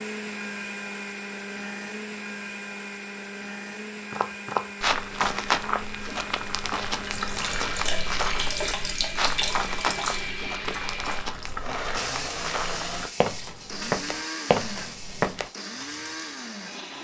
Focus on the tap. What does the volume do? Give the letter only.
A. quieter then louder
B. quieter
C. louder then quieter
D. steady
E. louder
B.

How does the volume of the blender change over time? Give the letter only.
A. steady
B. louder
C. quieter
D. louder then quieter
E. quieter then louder
A.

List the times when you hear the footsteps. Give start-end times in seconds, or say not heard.
4.1-15.5.